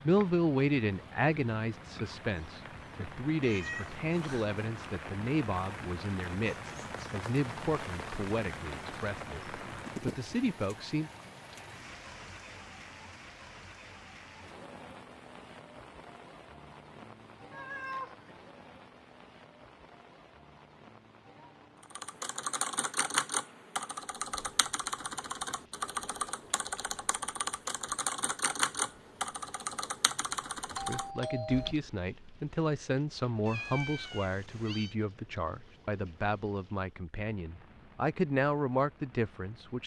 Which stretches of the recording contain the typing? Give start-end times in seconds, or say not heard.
21.9-31.9.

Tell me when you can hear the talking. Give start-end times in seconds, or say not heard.
0.0-11.1, 30.7-39.8.